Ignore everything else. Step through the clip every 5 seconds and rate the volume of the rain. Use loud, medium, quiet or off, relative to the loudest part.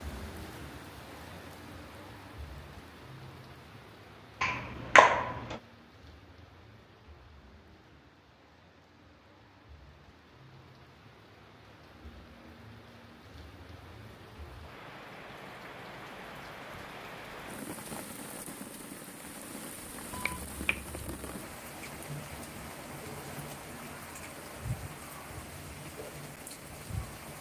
medium, quiet, medium, loud, loud, loud.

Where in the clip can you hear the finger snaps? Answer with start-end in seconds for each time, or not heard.
4.4-5.5, 20.1-21.1.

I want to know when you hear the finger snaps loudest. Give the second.
5 s.